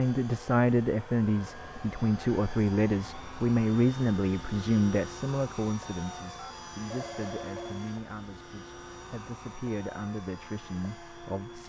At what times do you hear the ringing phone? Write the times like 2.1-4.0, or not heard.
6.3-7.8.